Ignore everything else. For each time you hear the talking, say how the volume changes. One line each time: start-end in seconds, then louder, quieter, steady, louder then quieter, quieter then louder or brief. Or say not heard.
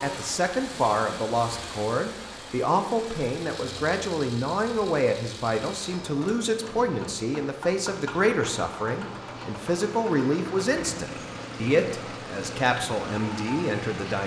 0.0-14.2 steady.